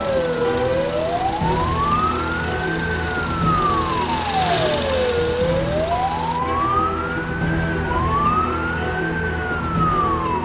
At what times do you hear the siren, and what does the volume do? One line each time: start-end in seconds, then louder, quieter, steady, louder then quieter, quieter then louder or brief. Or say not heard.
0.0-10.4 steady.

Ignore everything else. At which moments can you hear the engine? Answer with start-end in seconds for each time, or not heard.
0.0-6.4.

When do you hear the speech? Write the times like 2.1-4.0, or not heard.
not heard.